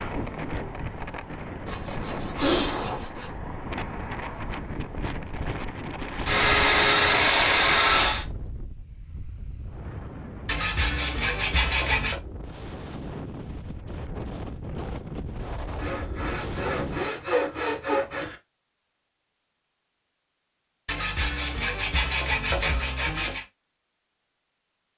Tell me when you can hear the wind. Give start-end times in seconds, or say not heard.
0.0-17.1.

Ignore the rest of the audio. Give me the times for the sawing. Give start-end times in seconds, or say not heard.
1.6-3.3, 6.2-8.2, 10.4-12.2, 15.8-18.4, 20.9-23.4.